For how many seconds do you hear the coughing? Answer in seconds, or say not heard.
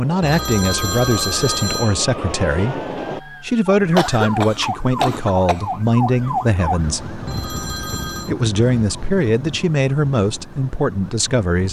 2 s.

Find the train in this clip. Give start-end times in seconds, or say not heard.
0.0-3.2.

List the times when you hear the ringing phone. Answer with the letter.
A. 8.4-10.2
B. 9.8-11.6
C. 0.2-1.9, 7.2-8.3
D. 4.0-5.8
C.